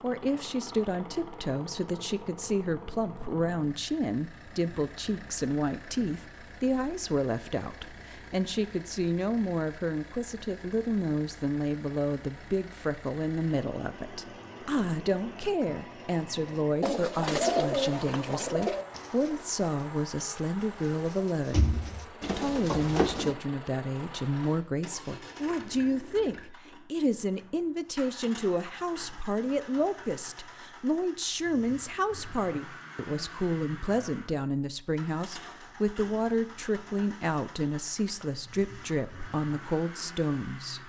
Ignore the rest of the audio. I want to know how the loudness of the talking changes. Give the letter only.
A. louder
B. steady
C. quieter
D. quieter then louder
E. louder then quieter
B.